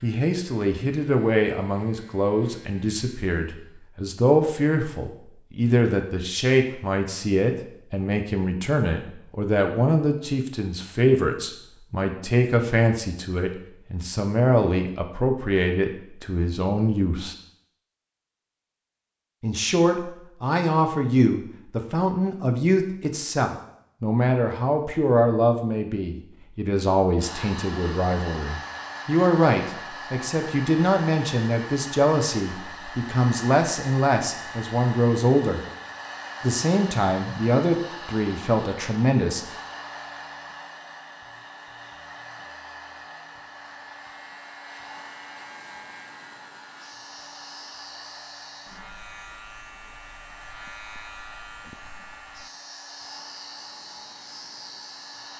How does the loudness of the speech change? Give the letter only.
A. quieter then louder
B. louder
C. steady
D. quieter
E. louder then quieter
C.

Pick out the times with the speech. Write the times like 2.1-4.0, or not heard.
0.0-17.4, 19.4-35.6, 36.4-39.5.